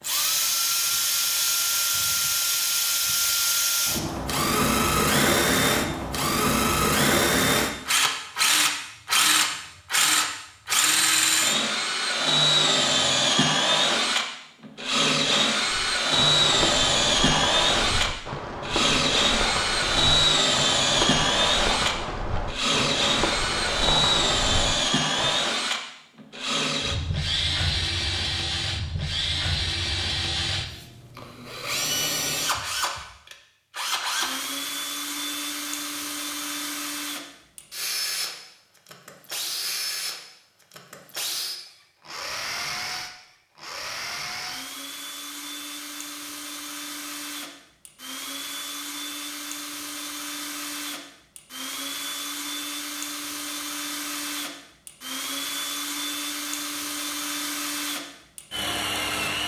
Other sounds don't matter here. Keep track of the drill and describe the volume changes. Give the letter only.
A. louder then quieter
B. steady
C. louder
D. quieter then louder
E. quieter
E.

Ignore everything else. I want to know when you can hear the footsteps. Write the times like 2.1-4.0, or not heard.
15.8-25.4.